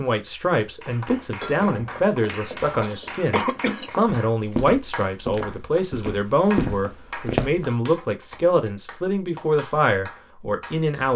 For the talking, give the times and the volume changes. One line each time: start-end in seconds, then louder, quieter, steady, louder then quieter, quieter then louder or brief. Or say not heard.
0.0-11.1 steady.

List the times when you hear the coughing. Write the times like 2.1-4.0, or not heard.
2.8-3.9.